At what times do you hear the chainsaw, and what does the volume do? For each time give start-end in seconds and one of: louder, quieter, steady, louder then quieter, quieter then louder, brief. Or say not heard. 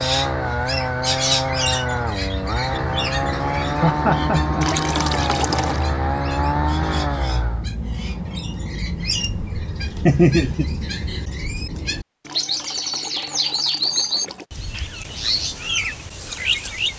0.0-7.7 steady.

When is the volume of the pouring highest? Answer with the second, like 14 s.
5 s.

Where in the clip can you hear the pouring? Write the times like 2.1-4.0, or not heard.
4.6-5.9, 12.2-14.4.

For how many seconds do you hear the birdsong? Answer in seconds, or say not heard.
17 s.